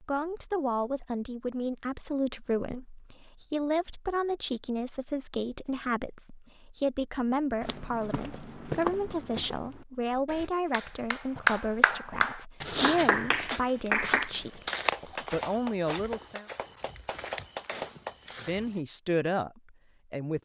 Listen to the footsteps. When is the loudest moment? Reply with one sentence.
The loudest moment of the footsteps is at 13 seconds.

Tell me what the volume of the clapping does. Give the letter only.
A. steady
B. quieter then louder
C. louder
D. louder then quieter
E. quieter
E.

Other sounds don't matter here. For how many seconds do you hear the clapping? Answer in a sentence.
You can hear the clapping for 8 seconds altogether.